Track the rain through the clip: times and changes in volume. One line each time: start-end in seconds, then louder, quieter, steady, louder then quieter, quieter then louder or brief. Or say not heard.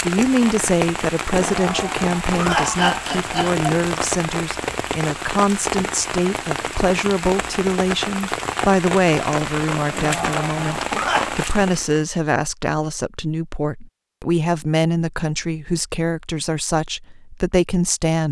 0.0-12.1 steady.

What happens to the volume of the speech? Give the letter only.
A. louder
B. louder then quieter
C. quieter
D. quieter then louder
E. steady
E.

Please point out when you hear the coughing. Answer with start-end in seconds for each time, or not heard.
1.3-3.6, 9.9-11.3.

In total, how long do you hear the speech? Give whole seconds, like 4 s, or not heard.
18 s.